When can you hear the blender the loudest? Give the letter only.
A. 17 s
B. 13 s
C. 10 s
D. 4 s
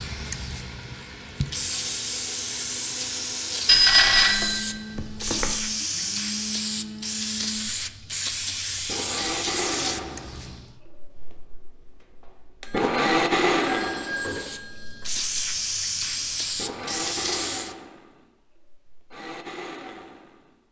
B.